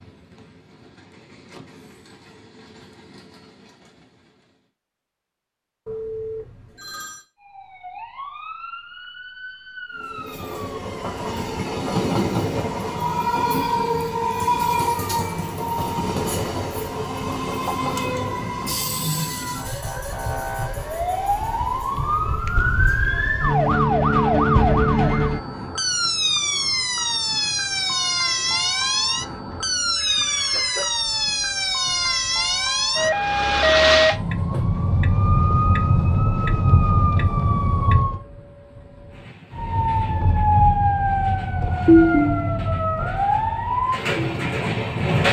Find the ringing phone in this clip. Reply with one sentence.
You can hear the ringing phone from 5.8 to 7.2 s and from 29.5 to 30.9 s.